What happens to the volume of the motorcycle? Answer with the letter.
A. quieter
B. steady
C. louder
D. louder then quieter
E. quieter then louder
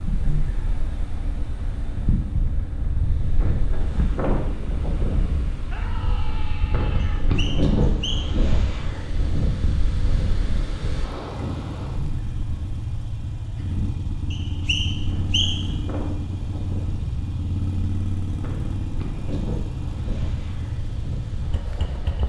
C.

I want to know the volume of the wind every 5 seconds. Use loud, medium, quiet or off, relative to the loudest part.
loud, loud, medium, medium, medium.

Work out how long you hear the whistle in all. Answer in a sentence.
You can hear the whistle for 3 seconds altogether.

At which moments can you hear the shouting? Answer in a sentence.
You can hear the shouting from 5.7 to 7.2 s.